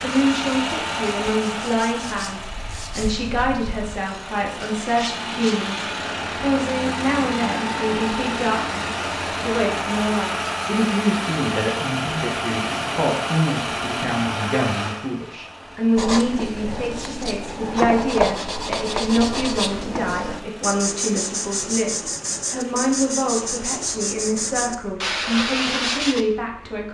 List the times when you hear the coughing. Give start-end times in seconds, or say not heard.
not heard.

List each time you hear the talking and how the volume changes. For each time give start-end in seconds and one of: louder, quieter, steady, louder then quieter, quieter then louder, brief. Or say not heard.
0.0-26.8 steady.